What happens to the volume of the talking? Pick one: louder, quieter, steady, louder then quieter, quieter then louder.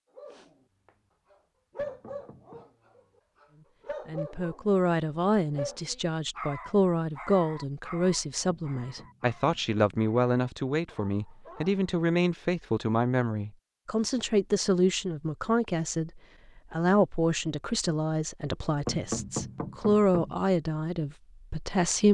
steady.